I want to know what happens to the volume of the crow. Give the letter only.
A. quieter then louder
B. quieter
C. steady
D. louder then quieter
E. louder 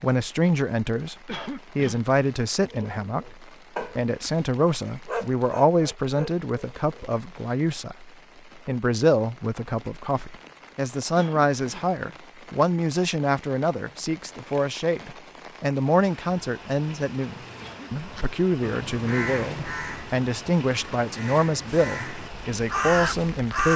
A.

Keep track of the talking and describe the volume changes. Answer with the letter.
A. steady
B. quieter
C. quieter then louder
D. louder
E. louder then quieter
A.